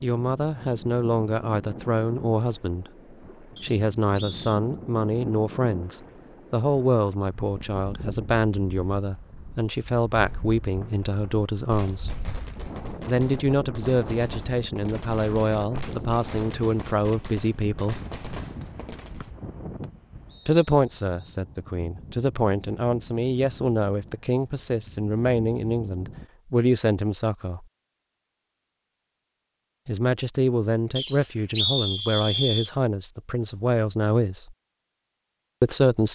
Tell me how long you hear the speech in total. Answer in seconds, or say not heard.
29 s.